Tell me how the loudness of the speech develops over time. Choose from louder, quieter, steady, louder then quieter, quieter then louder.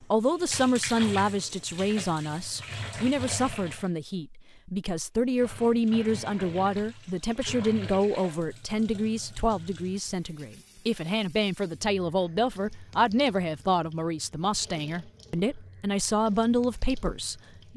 steady.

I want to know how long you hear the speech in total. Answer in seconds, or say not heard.
18 s.